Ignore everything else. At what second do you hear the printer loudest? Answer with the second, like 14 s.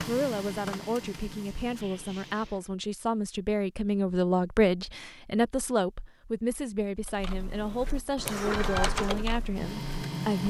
9 s.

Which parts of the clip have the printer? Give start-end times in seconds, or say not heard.
0.0-2.6, 8.2-10.4.